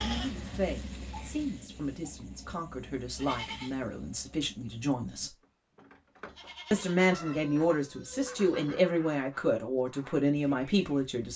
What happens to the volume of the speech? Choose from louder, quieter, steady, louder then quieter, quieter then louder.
louder.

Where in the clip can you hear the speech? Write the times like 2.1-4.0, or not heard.
0.0-5.3, 6.7-11.3.